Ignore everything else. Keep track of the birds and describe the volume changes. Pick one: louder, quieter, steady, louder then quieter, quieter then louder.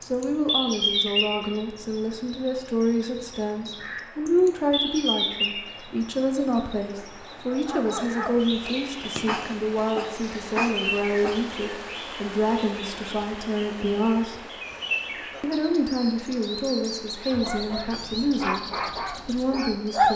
quieter.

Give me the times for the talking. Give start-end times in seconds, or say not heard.
0.0-14.4, 15.4-18.6, 19.2-20.1.